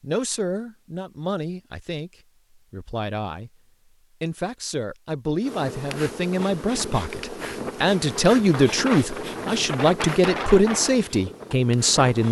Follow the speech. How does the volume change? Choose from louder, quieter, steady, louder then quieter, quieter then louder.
louder.